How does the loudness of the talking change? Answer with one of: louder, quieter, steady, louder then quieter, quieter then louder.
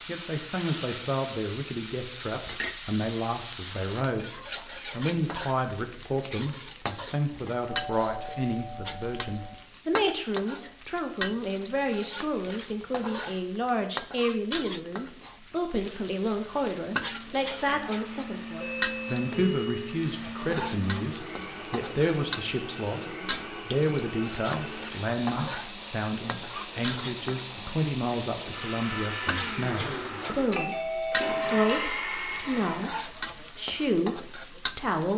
steady.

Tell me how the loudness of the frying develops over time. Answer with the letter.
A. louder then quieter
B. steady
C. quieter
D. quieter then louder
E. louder
B.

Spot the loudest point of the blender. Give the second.
32 s.